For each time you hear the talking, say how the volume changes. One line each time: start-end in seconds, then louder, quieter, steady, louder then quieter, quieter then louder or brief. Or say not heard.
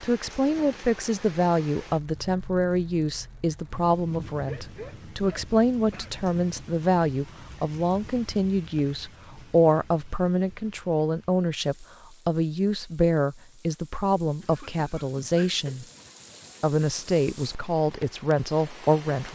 0.0-15.8 steady
16.6-19.3 brief.